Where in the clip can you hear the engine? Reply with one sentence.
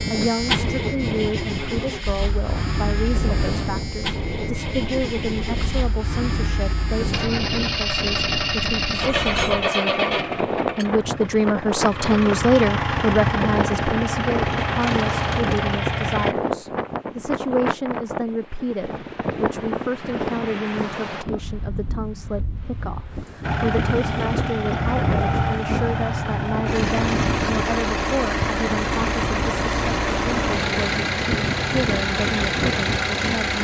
You can hear the engine from 0.0 to 16.4 s and from 23.4 to 33.5 s.